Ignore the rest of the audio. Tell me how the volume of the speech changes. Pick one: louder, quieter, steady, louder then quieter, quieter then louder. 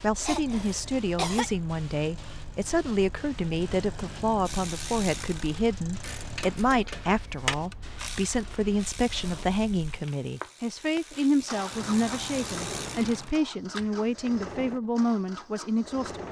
steady.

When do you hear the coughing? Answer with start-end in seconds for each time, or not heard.
0.2-1.5.